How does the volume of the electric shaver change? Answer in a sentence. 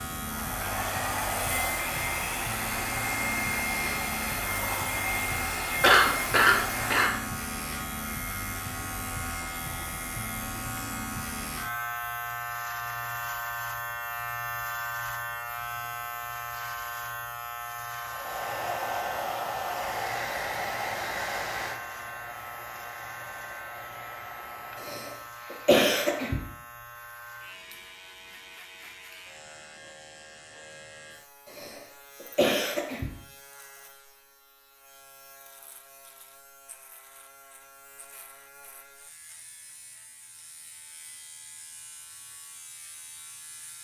The volume of the electric shaver goes down.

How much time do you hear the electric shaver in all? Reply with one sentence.
The electric shaver can be heard for 44 seconds in total.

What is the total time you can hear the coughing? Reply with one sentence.
You can hear the coughing for 5 seconds altogether.